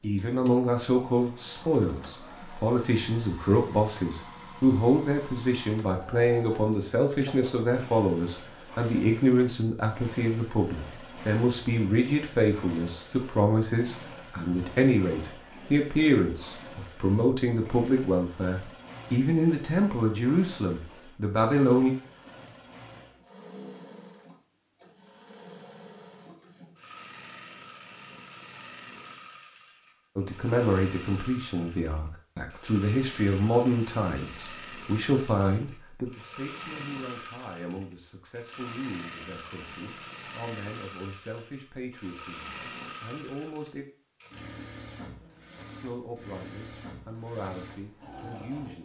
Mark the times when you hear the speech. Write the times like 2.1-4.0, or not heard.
0.0-21.9, 30.1-43.9, 45.8-48.8.